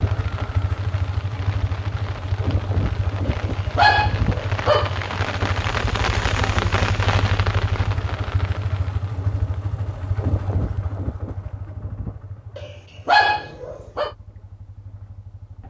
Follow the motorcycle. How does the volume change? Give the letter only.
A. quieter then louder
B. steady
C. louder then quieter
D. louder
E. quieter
E.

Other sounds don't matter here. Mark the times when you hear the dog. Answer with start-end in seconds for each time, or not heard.
3.2-5.0, 12.6-14.1.